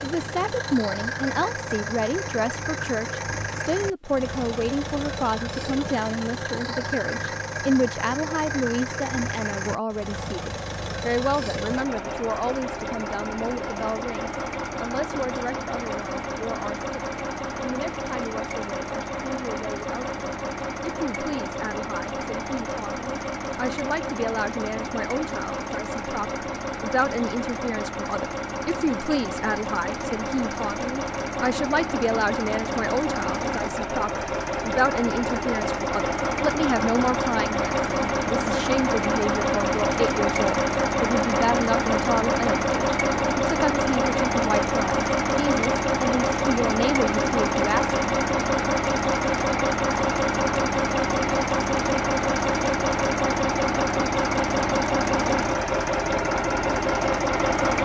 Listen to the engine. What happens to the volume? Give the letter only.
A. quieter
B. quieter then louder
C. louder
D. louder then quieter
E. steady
C.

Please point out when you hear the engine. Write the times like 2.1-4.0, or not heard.
0.0-57.7.